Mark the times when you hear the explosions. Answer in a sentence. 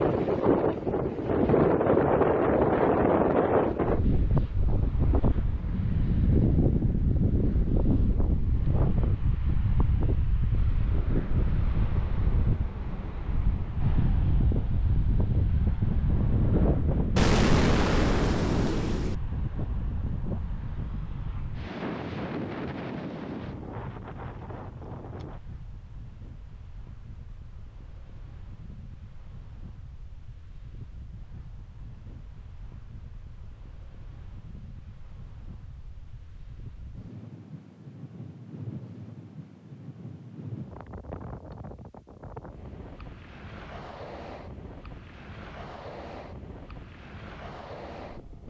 You can hear the explosions from 17.1 to 19.1 s.